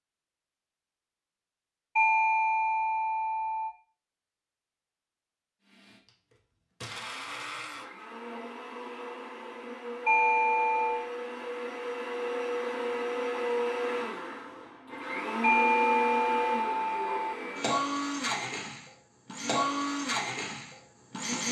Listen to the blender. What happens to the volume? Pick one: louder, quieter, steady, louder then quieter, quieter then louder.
louder.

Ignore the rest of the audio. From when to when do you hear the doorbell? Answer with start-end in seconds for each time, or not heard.
1.9-3.8, 10.1-11.1, 15.4-17.1.